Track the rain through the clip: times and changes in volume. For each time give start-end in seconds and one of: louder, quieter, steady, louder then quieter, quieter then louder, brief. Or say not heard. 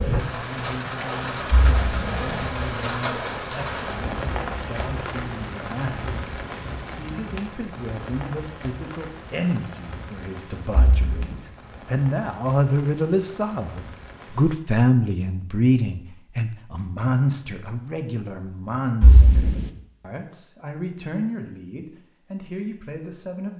0.0-14.6 quieter.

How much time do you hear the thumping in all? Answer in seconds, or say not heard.
2 s.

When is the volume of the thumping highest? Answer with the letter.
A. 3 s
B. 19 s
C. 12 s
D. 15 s
B.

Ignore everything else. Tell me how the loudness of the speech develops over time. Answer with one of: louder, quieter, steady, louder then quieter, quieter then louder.
louder then quieter.